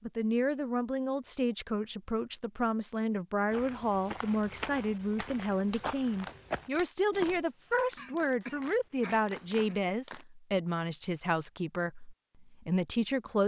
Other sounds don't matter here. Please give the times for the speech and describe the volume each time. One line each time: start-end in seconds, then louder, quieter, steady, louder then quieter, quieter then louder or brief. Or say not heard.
0.0-13.4 steady.